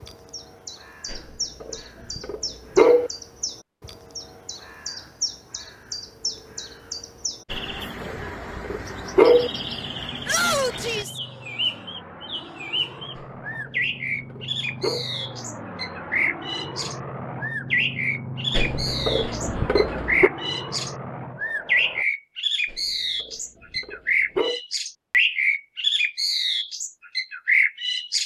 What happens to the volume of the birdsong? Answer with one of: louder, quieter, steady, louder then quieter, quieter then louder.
louder.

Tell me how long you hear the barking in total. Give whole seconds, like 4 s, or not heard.
10 s.